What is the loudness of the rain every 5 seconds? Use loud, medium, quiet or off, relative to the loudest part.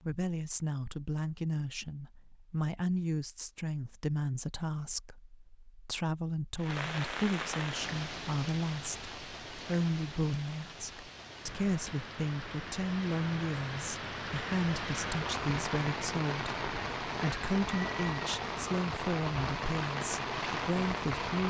off, medium, medium, loud, loud.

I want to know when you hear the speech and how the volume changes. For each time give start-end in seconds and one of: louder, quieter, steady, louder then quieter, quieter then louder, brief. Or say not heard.
0.0-21.4 steady.